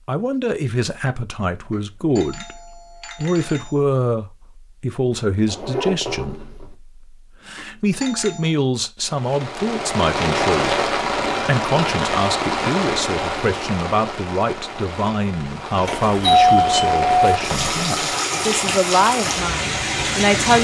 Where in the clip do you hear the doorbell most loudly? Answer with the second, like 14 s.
16 s.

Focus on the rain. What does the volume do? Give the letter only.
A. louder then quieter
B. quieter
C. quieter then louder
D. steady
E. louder
C.